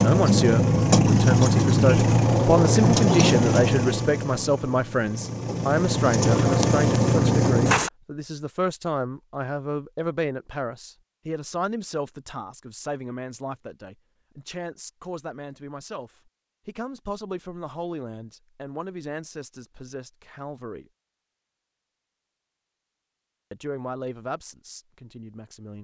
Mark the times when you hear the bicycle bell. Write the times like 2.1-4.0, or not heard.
not heard.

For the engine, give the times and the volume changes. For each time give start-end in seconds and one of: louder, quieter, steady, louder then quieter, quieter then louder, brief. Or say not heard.
0.0-7.9 quieter then louder.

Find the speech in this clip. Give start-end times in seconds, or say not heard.
0.0-20.9, 23.5-25.7.